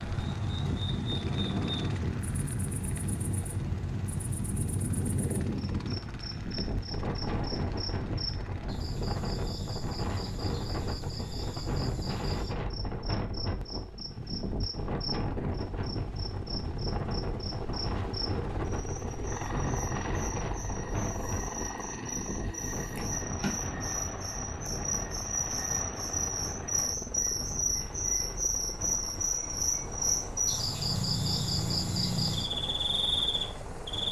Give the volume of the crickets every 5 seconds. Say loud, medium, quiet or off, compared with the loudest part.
quiet, quiet, quiet, quiet, medium, loud, loud.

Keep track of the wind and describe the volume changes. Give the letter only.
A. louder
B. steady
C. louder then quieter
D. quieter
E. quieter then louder
D.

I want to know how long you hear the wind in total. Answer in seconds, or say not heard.
34 s.